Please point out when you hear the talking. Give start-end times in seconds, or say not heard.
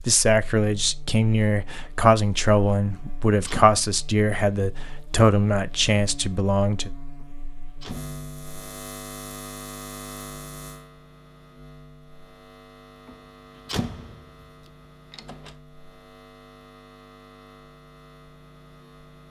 0.0-6.9.